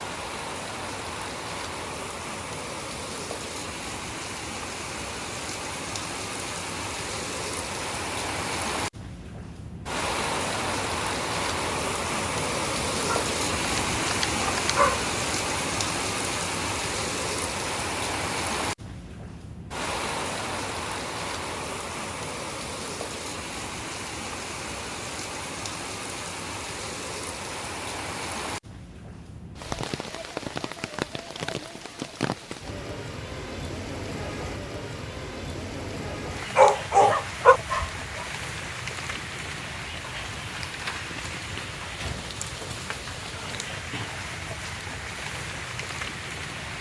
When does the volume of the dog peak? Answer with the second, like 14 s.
37 s.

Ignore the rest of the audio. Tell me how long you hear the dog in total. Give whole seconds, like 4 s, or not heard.
4 s.